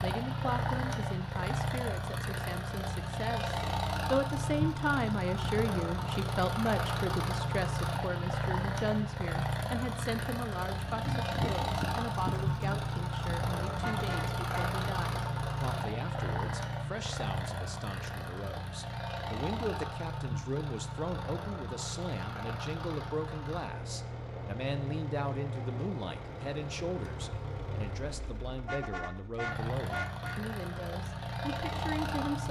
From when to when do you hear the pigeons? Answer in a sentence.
The pigeons can be heard from 10.8 to 12.8 s.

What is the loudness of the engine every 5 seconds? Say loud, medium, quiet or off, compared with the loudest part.
loud, loud, loud, loud, medium, medium, loud.